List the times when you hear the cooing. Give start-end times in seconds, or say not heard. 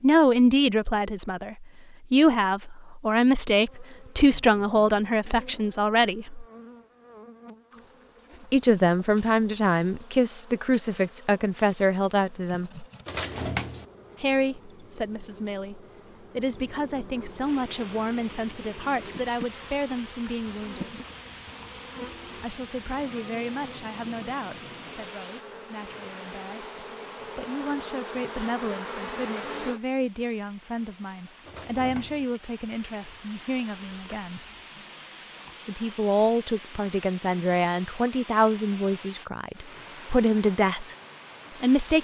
13.1-13.8, 31.4-32.2.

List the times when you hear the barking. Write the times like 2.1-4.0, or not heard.
not heard.